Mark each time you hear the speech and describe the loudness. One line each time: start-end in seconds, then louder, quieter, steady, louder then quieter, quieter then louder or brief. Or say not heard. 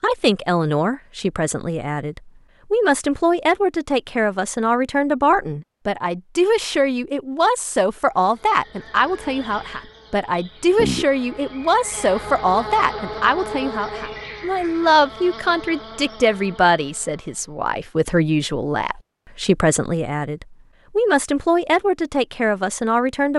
0.0-23.3 steady.